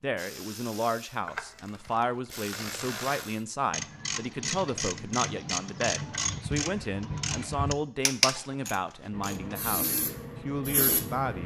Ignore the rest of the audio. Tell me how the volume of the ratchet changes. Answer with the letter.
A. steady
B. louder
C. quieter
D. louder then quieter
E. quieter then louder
B.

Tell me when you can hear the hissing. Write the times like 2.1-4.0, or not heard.
9.1-11.4.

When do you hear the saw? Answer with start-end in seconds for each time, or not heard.
not heard.